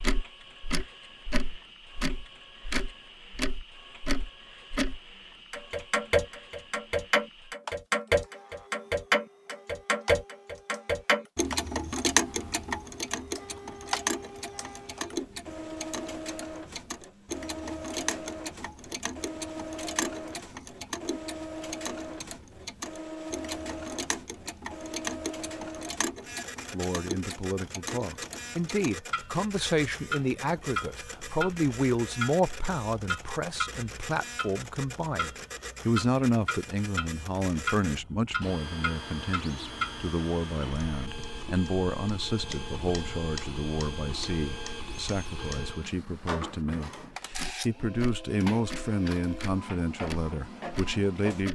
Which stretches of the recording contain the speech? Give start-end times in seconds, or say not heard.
26.7-51.4.